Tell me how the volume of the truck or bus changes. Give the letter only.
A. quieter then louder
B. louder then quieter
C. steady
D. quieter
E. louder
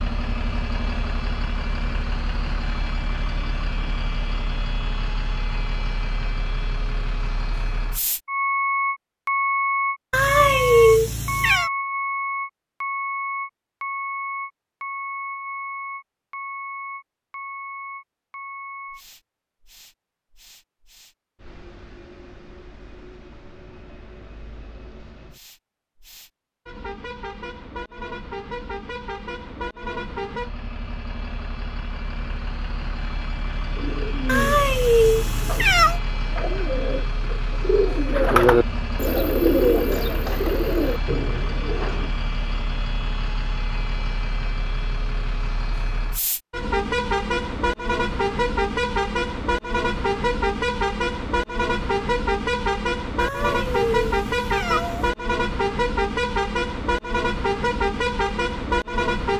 A.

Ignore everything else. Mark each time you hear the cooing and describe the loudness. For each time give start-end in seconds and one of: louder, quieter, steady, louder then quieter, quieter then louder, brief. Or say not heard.
33.8-42.1 louder then quieter.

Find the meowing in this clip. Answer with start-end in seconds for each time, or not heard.
10.1-11.7, 34.2-36.0, 53.1-55.1.